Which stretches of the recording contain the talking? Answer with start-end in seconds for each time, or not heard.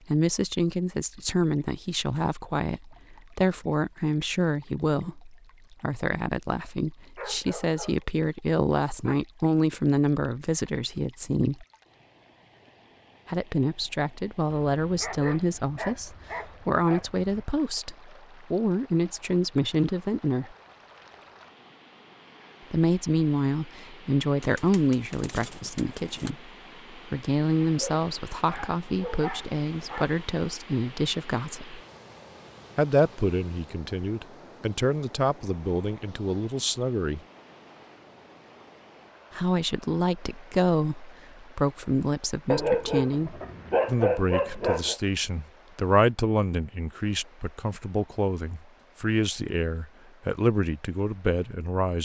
0.1-11.7, 13.2-20.6, 22.7-31.8, 32.8-37.2, 39.3-52.0.